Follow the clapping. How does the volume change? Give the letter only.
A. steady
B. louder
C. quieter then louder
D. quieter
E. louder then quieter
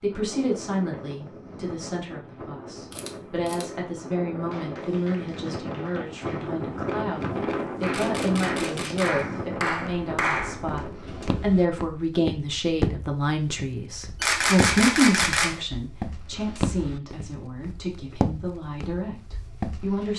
B.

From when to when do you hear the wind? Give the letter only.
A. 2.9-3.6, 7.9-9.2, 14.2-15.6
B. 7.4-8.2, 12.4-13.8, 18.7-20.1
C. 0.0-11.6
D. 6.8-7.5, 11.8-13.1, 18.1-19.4
C.